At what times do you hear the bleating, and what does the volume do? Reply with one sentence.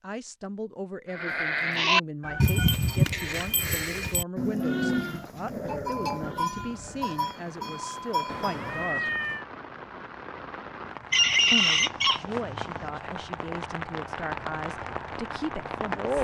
You can hear the bleating from 1.1 to 8.8 s, getting quieter.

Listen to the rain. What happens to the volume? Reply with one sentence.
The volume of the rain goes up.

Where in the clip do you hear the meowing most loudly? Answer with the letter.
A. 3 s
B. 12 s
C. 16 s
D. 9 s
D.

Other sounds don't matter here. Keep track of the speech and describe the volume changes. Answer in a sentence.
The volume of the speech stays about the same.